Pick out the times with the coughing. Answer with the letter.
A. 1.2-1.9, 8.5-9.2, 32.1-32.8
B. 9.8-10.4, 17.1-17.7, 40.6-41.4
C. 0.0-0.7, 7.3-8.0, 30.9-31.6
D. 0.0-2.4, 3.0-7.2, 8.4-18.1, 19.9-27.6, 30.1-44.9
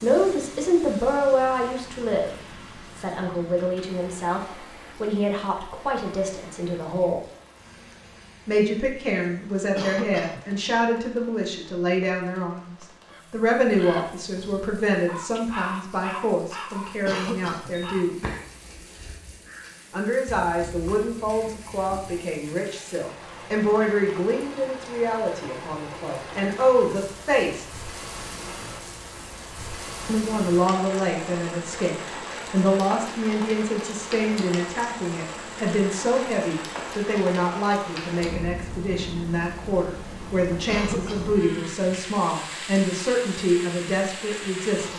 B.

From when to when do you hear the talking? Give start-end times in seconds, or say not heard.
0.0-2.4, 3.0-7.2, 8.4-18.1, 19.9-27.6, 30.1-44.9.